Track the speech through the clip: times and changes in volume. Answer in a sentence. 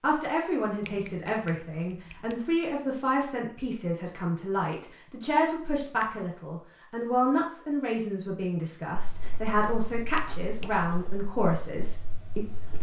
The speech can be heard from 0.0 to 12.7 s, at a steady volume.